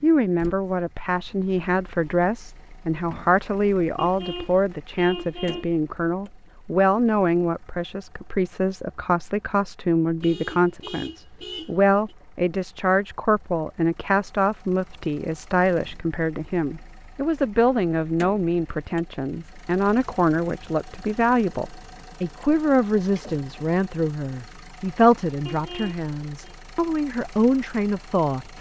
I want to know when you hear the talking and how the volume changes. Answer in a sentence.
The talking can be heard from 0.0 to 28.4 s, at a steady volume.